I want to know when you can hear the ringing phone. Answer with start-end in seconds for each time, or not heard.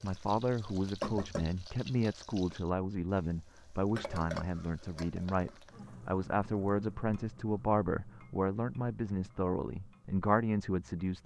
not heard.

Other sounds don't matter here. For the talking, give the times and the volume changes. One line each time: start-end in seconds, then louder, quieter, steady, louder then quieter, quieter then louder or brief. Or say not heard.
0.0-11.2 steady.